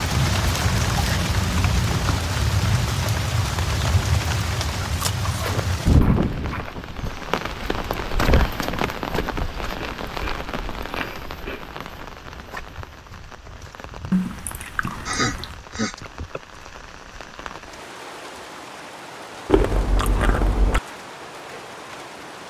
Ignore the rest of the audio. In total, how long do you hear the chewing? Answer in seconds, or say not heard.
9 s.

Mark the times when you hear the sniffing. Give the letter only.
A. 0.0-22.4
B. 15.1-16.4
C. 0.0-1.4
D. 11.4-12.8
B.